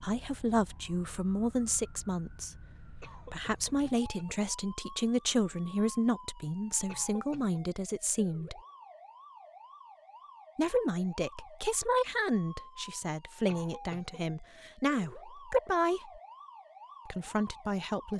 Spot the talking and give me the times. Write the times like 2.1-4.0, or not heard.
0.0-8.6, 10.6-16.2, 17.1-18.1.